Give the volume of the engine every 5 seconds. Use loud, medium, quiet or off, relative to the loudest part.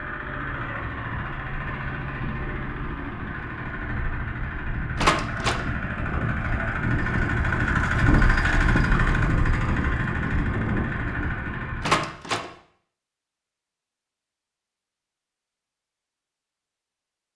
medium, loud, loud, off.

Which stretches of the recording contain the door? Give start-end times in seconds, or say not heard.
5.0-5.7, 11.8-12.5.